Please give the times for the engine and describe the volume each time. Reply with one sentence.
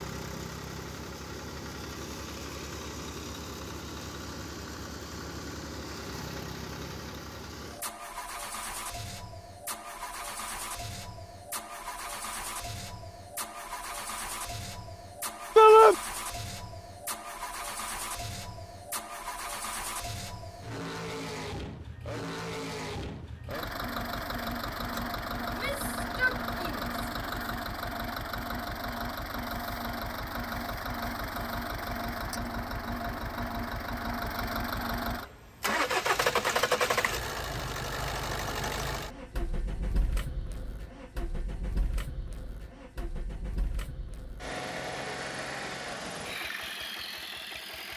You can hear the engine from 0.0 to 47.9 s, getting louder then quieter.